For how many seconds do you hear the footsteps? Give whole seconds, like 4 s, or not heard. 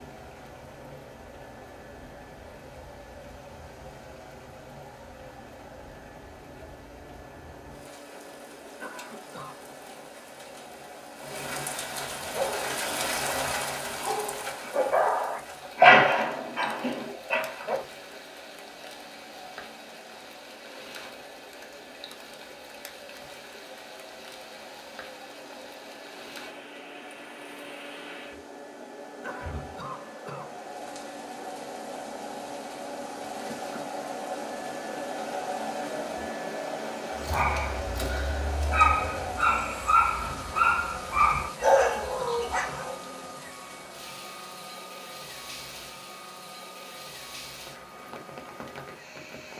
not heard.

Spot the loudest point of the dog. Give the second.
16 s.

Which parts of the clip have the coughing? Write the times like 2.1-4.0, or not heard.
8.8-9.6, 29.2-30.6, 41.6-43.0.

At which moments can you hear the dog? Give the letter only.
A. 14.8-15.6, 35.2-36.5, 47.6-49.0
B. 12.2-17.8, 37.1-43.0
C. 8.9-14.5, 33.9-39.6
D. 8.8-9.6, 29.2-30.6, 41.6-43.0
B.